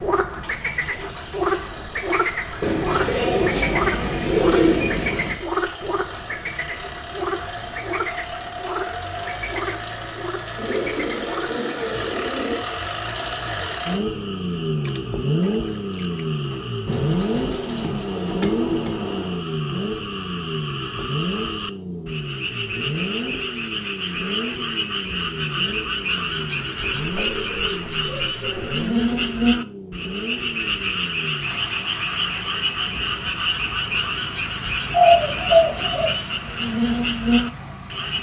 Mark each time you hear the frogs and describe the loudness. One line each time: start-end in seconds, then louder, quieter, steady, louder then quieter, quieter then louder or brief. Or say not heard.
0.0-38.1 quieter then louder.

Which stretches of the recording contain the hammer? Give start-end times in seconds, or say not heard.
not heard.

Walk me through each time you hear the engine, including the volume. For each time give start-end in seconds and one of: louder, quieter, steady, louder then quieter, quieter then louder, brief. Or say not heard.
0.0-38.1 louder then quieter.